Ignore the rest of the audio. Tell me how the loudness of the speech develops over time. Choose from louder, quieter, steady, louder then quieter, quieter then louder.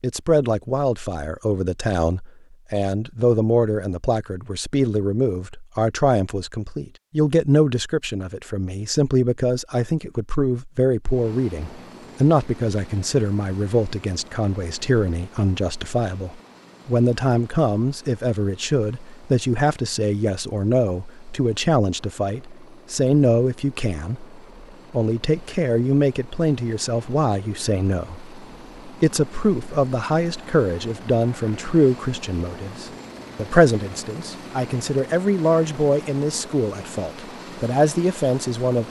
steady.